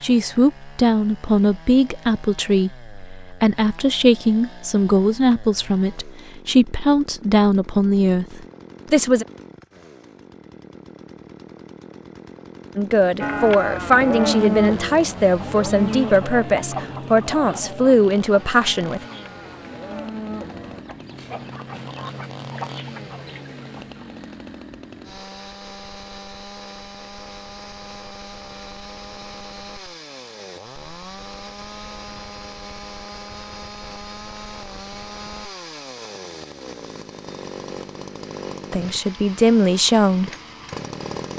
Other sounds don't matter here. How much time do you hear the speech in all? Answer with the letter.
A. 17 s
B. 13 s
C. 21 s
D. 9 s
A.